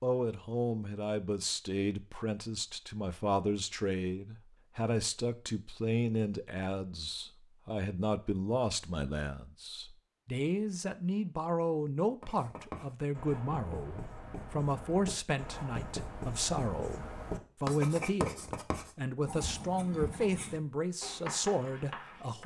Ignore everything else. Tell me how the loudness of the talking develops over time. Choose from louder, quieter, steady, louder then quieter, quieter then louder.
steady.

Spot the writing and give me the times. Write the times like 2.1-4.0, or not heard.
12.2-22.4.